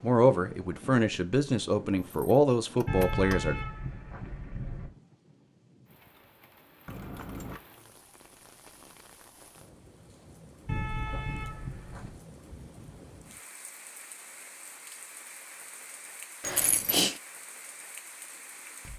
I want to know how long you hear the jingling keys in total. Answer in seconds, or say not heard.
3 s.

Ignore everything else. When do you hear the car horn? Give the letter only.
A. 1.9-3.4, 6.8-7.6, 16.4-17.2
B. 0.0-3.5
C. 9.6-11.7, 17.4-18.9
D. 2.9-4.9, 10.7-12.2
D.